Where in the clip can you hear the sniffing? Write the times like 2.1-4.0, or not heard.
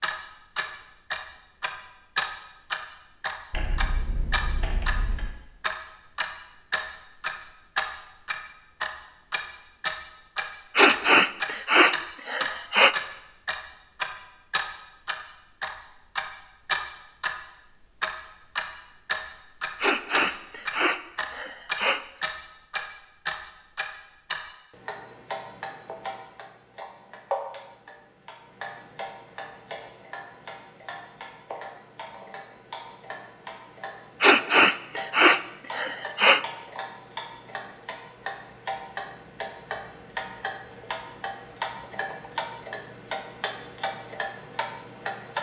10.8-12.9, 19.8-22.0, 34.2-36.5.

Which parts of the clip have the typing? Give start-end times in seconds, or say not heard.
3.5-5.3.